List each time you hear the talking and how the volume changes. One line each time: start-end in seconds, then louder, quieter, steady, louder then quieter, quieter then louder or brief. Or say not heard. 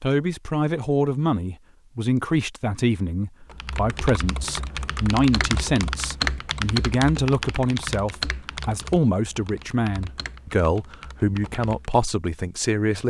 0.0-13.0 steady.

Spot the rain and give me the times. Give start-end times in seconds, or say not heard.
not heard.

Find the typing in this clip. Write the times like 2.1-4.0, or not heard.
3.5-12.1.